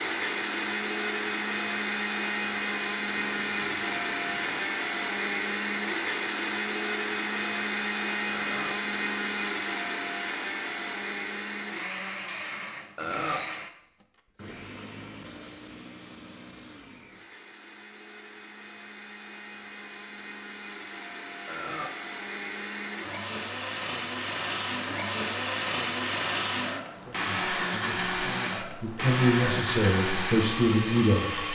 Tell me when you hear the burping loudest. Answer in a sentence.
The volume of the burping peaks at 13 seconds.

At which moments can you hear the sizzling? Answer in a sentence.
The sizzling can't be heard in this clip.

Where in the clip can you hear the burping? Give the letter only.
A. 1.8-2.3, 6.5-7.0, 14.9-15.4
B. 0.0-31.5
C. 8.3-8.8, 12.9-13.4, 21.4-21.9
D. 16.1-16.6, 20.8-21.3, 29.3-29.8
C.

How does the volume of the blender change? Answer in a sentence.
The volume of the blender goes down, then up.